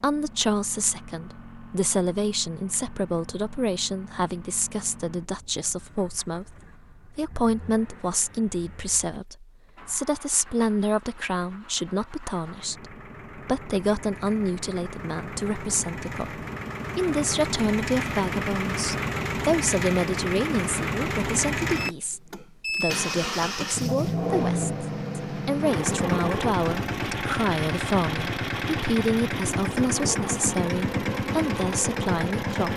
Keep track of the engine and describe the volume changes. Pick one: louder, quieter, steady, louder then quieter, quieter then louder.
louder.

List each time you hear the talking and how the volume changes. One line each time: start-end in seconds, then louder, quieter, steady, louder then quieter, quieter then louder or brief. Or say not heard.
0.0-32.7 steady.